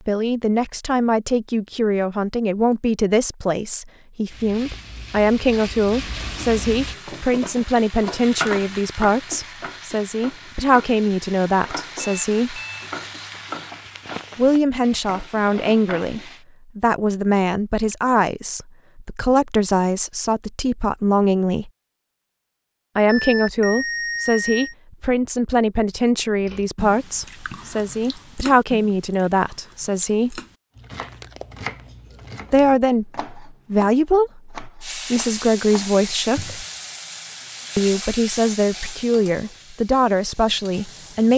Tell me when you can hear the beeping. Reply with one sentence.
You can hear the beeping from 12.0 to 12.9 s and from 23.1 to 24.8 s.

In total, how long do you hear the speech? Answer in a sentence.
The speech can be heard for 35 seconds in total.